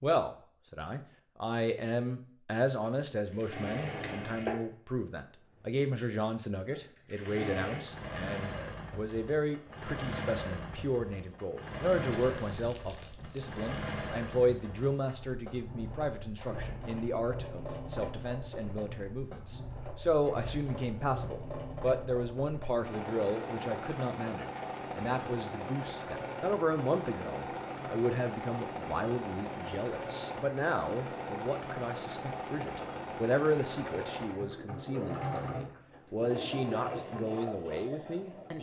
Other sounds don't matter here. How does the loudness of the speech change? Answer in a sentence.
The loudness of the speech stays about the same.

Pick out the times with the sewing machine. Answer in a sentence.
You can hear the sewing machine from 3.2 to 38.5 s.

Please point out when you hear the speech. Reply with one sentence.
You can hear the speech from 0.0 to 38.5 s.